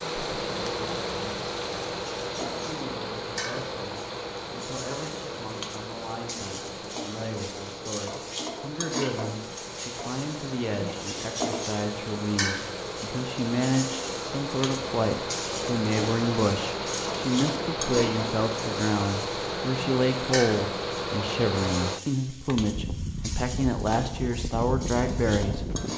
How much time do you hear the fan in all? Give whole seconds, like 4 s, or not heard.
26 s.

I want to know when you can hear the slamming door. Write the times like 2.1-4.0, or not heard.
not heard.